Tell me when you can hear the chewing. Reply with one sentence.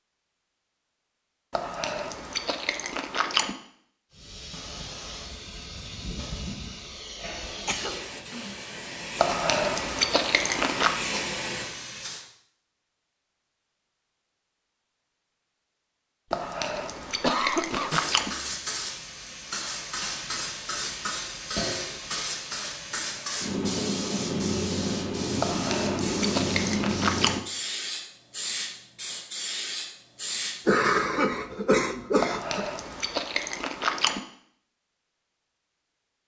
You can hear the chewing from 1.5 to 3.5 s, from 9.2 to 10.9 s, from 16.3 to 18.3 s, from 25.4 to 27.4 s and from 32.2 to 34.2 s.